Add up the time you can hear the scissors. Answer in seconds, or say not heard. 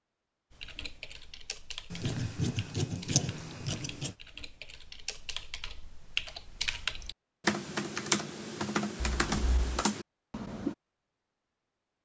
3 s.